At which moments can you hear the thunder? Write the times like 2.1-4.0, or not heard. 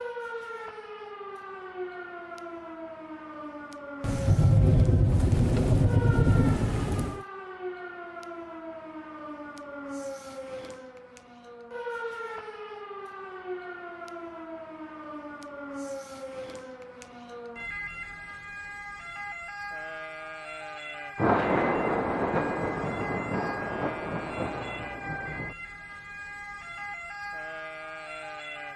4.0-7.2, 21.1-25.6.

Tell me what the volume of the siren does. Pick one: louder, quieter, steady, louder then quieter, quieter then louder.
steady.